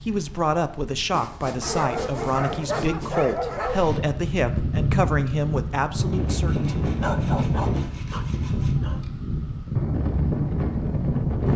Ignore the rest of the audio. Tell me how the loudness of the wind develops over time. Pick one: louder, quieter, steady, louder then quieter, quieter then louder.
louder.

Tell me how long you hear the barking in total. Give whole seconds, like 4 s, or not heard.
4 s.